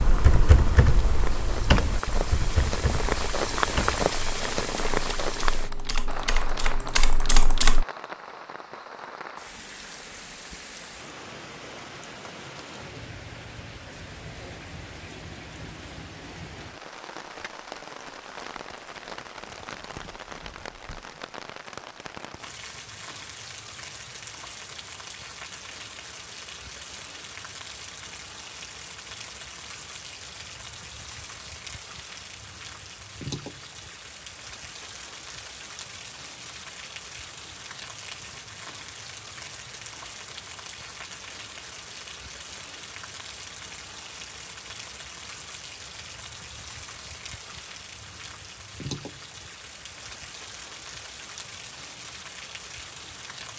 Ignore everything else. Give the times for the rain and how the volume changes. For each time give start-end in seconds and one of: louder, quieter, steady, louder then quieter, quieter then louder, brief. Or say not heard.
0.0-53.5 quieter.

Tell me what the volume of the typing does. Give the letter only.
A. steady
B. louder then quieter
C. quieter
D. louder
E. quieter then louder
E.